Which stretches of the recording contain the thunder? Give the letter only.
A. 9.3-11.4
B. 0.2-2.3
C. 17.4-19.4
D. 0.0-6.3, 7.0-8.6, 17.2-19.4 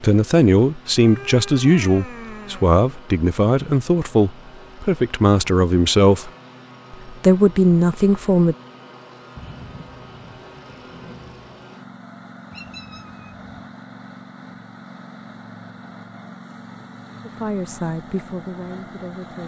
A.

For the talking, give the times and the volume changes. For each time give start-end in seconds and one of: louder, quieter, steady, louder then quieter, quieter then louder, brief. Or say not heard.
0.0-6.3 steady
7.0-8.6 brief
17.2-19.4 brief.